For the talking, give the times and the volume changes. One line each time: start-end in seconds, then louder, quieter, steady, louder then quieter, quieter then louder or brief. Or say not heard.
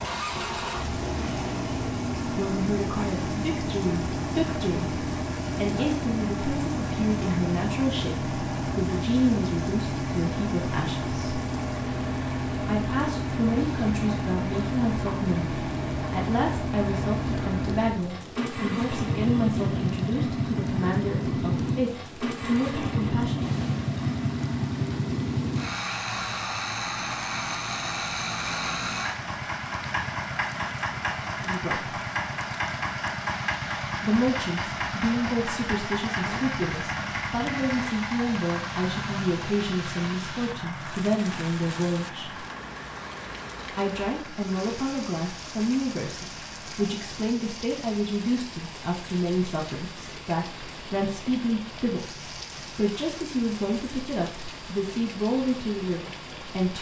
2.2-11.2 steady
12.7-23.5 steady
31.4-32.0 brief
34.0-42.5 steady
43.8-56.7 steady.